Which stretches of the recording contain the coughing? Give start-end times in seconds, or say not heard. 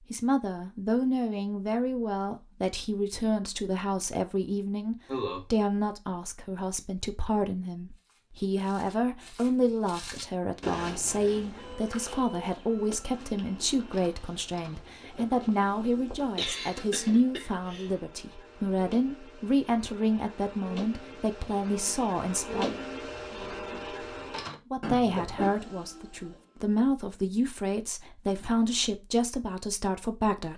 5.0-5.5, 16.1-17.9, 24.8-25.6.